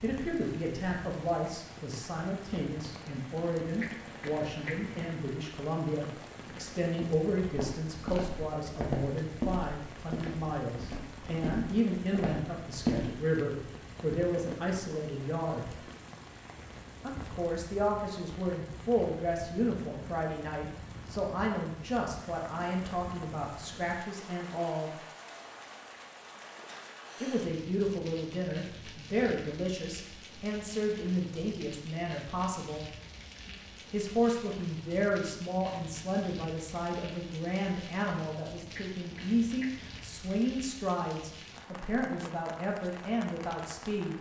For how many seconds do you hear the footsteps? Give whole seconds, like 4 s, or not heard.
6 s.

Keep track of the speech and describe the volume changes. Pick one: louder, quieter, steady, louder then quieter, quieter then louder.
steady.